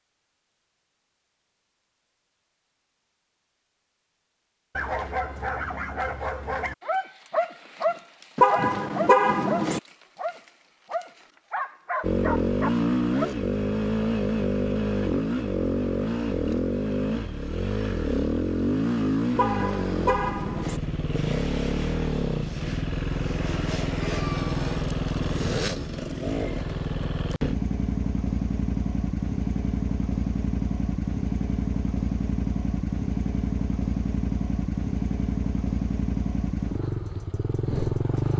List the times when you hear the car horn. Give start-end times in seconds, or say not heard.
8.3-9.8, 19.4-20.8.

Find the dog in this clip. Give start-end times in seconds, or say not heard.
4.8-13.3.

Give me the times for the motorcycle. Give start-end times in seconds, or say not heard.
12.0-38.3.